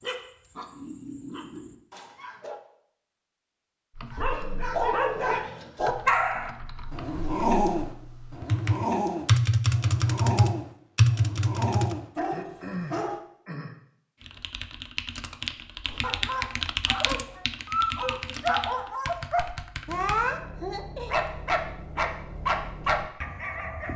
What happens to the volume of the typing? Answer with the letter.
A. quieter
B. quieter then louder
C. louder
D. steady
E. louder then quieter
E.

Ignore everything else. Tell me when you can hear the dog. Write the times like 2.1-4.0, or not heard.
0.0-2.6, 4.1-13.2, 15.8-23.9.